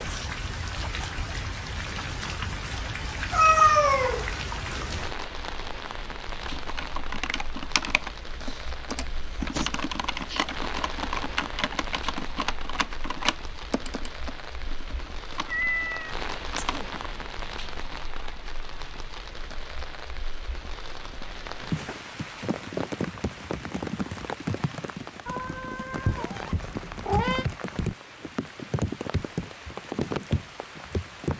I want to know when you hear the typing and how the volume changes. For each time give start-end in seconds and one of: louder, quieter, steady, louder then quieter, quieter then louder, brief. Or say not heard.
6.4-16.9 quieter.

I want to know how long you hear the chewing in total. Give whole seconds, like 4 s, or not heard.
not heard.